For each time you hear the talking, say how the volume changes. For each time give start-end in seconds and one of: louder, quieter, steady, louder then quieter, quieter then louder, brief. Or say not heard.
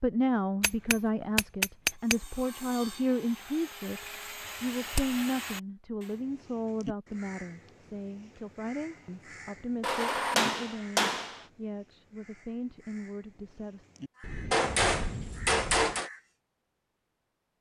0.0-13.8 quieter.